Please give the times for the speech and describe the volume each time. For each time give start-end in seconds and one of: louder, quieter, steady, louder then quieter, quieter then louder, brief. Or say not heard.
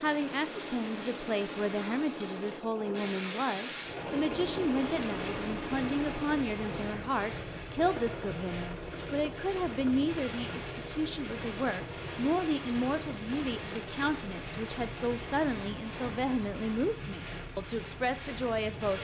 0.0-18.9 steady.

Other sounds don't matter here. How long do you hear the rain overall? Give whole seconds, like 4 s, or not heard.
19 s.